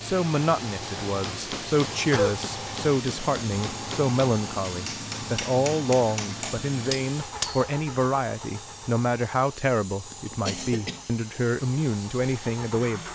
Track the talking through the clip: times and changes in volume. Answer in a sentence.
You can hear the talking from 0.0 to 13.1 s, at a steady volume.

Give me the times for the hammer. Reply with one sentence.
The hammer can be heard from 1.1 to 7.7 s.